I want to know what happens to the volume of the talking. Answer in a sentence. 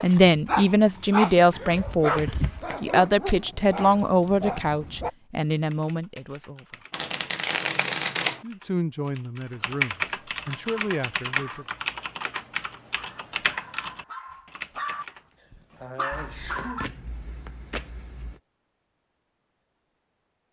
The loudness of the talking goes down.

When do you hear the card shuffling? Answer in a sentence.
The card shuffling can be heard from 2.0 to 3.0 s, from 6.9 to 8.4 s and from 16.1 to 18.4 s.